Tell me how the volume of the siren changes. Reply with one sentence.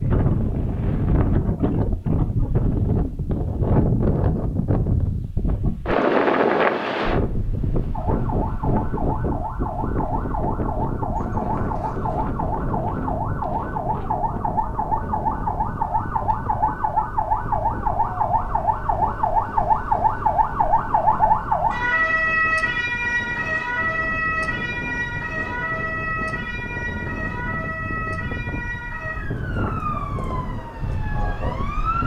The loudness of the siren goes up, then down.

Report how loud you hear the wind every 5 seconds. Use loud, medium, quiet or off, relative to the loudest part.
loud, loud, medium, quiet, quiet, medium, medium.